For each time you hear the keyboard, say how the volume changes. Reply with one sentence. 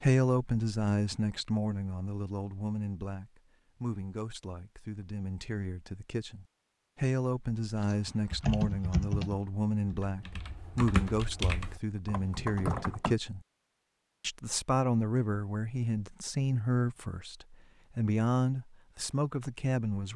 You can hear the keyboard from 7.8 to 13.2 s, getting quieter then louder.